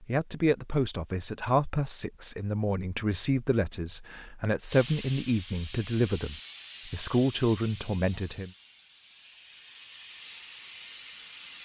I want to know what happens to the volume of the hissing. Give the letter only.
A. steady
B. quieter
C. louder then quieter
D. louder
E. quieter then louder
E.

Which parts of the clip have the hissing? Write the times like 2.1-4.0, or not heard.
4.7-11.6.